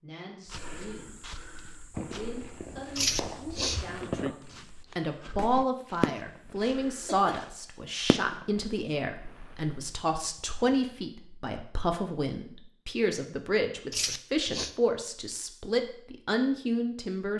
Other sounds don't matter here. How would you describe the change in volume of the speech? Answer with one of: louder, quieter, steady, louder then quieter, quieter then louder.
louder.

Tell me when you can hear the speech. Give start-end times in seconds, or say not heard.
0.0-17.3.